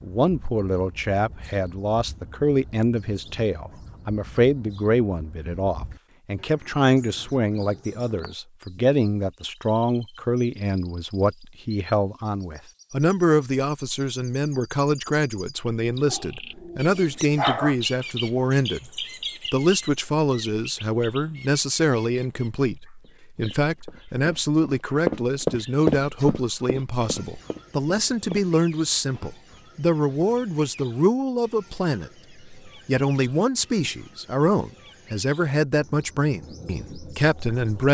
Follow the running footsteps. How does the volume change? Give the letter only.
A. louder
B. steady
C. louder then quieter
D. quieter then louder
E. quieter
C.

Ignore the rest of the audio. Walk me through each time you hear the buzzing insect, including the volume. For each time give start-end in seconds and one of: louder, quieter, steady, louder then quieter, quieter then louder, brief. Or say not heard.
not heard.